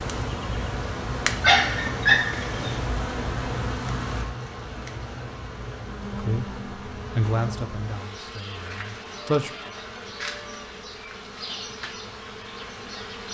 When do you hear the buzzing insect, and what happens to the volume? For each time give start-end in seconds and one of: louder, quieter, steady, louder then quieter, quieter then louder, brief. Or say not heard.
0.0-13.3 quieter.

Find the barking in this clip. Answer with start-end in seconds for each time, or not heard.
1.4-2.5.